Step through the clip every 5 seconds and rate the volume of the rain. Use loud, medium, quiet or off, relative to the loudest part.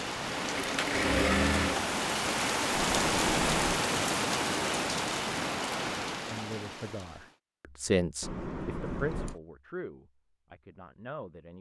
loud, medium, off.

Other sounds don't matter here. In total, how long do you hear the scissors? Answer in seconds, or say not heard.
2 s.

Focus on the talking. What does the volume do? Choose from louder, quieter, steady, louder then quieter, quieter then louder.
louder then quieter.